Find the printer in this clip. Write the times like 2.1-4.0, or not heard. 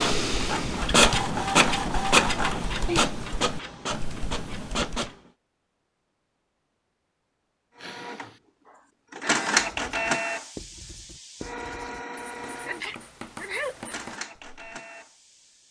0.0-5.2, 7.8-15.6.